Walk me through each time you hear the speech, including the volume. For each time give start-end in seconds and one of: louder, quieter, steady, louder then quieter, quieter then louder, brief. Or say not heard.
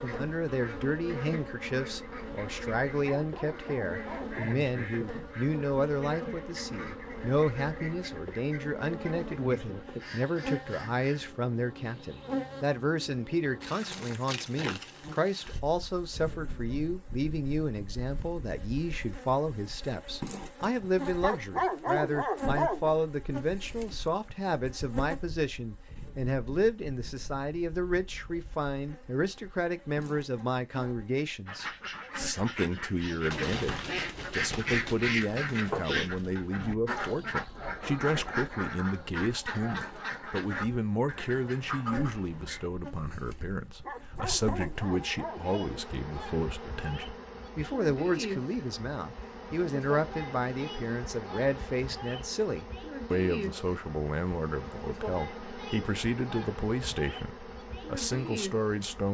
0.0-59.0 steady.